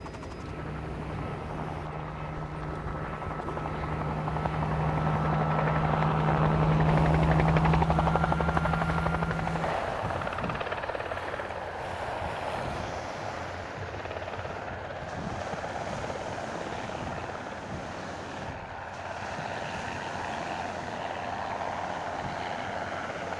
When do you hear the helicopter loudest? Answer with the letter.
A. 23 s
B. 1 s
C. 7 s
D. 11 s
C.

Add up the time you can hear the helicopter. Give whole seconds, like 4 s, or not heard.
23 s.